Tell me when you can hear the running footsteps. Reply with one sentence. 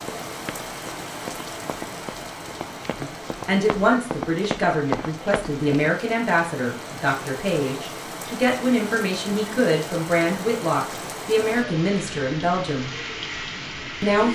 You can hear the running footsteps from 0.0 to 5.9 s.